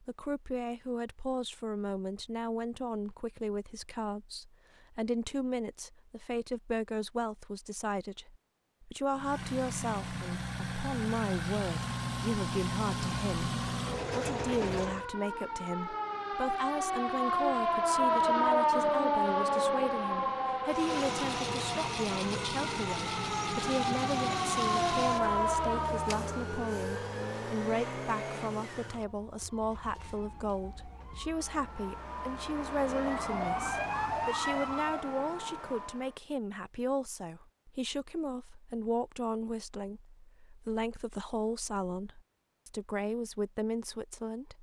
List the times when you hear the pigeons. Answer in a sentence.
You can't hear the pigeons here.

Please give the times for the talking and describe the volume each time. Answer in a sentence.
You can hear the talking from 0.0 to 44.5 s, at a steady volume.